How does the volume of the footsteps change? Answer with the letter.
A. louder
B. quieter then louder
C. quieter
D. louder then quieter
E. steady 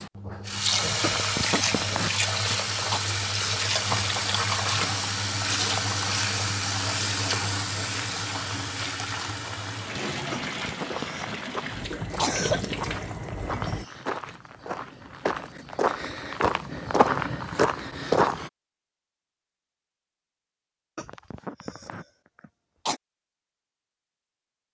A.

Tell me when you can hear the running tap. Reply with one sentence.
You can hear the running tap from 0.0 to 13.8 s.